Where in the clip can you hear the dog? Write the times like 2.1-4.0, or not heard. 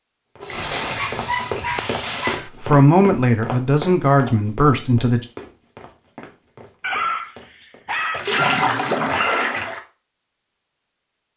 0.8-2.5, 6.8-9.6.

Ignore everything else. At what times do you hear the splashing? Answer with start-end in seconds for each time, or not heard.
0.4-2.4, 8.1-9.8.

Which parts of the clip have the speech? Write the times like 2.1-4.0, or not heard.
2.6-5.2.